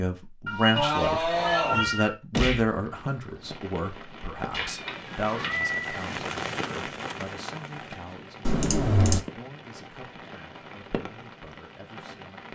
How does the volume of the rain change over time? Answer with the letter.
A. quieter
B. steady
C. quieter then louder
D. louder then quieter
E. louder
D.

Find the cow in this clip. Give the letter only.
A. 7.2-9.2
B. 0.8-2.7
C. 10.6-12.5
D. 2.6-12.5
B.